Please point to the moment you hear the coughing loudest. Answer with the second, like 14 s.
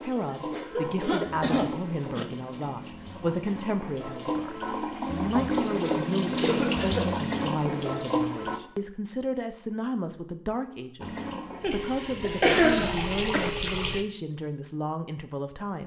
13 s.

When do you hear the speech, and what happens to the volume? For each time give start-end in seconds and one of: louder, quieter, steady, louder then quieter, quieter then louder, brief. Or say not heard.
0.0-15.8 steady.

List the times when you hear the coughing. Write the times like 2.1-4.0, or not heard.
0.2-2.2, 6.4-7.1, 11.6-13.5.